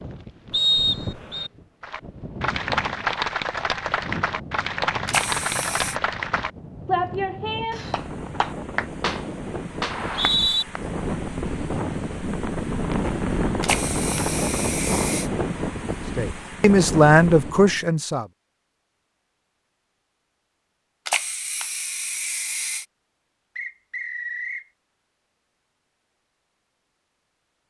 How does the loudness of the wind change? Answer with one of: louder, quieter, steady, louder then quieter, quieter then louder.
louder.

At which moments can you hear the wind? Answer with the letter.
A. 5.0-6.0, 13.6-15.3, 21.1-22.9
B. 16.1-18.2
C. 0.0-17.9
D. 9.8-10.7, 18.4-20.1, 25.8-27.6
C.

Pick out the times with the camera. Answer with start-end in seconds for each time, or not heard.
5.0-6.0, 13.6-15.3, 21.1-22.9.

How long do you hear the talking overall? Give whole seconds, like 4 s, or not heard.
2 s.